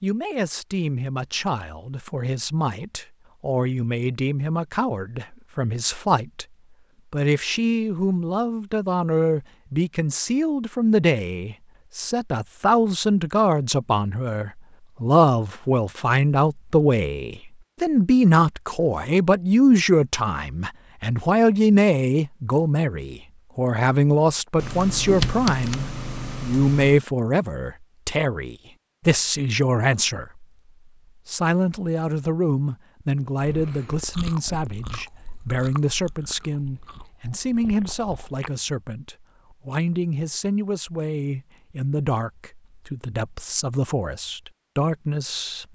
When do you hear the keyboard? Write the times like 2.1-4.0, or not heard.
24.6-27.0.